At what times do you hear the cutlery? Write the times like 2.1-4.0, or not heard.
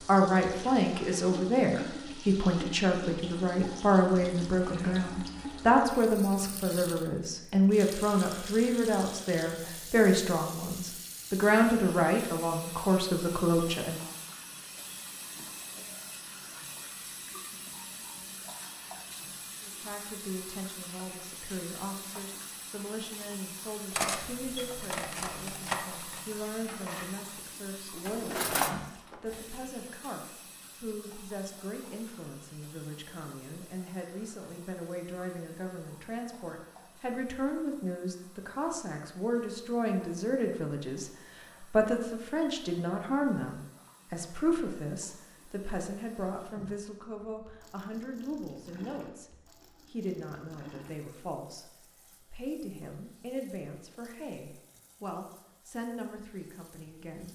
23.9-27.4, 28.1-29.4.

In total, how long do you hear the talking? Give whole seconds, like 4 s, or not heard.
51 s.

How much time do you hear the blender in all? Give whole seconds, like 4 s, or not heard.
not heard.